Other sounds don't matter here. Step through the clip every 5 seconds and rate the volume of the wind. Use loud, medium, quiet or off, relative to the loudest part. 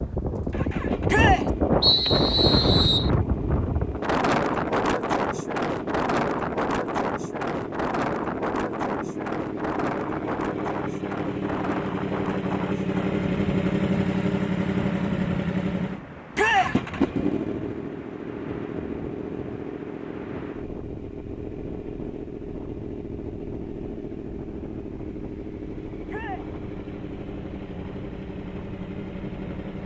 loud, loud, medium, quiet, quiet, quiet.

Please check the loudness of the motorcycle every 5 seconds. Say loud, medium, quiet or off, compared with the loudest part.
medium, medium, loud, loud, medium, medium.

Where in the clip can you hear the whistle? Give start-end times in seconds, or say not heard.
1.8-3.1.